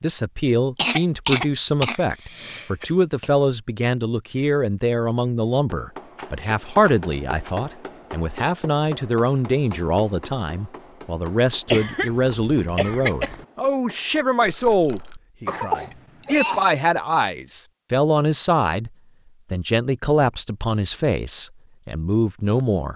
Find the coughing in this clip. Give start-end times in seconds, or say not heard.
0.8-3.3, 11.7-13.4, 15.4-16.6.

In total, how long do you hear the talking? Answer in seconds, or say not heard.
22 s.